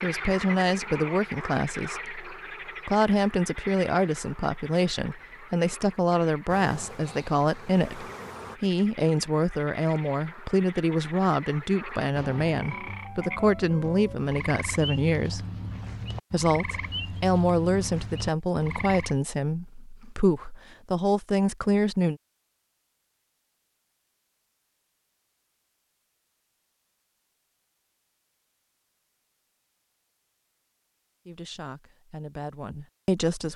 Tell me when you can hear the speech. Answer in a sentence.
The speech can be heard from 0.0 to 15.4 s, from 16.3 to 22.2 s and from 31.2 to 33.5 s.